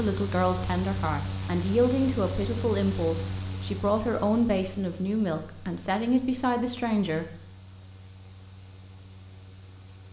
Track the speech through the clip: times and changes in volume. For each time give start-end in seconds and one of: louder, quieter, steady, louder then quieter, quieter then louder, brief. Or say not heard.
0.0-7.2 steady.